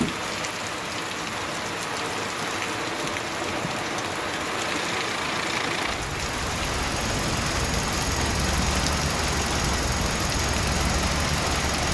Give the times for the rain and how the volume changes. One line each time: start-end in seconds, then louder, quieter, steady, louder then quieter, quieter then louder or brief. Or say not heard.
0.0-11.8 steady.